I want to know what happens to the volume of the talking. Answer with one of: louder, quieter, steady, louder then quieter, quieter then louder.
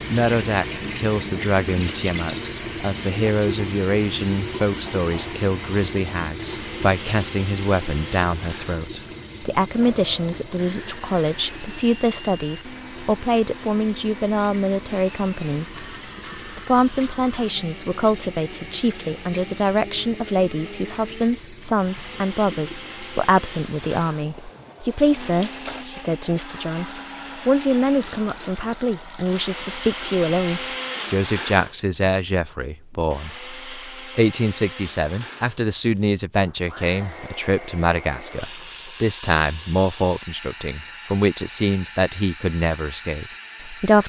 steady.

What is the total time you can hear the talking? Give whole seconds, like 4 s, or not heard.
43 s.